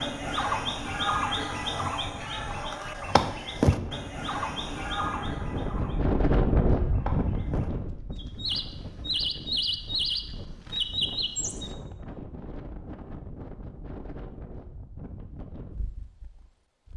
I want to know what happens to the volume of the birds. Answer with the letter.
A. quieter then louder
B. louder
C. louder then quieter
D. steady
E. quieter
A.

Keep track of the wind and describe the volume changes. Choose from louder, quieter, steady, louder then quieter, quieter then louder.
louder then quieter.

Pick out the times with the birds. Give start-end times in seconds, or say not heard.
0.0-11.7.